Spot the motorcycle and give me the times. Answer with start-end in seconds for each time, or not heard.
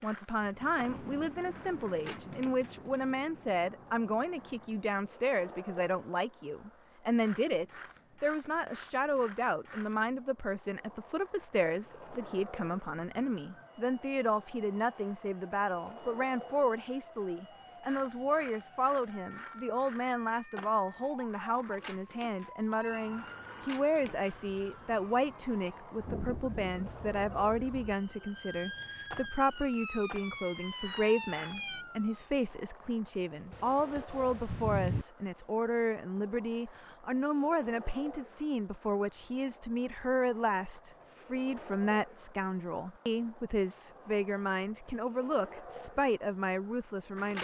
not heard.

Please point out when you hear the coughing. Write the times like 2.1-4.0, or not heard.
not heard.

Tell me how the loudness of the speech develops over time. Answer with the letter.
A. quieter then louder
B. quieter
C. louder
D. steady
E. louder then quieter
D.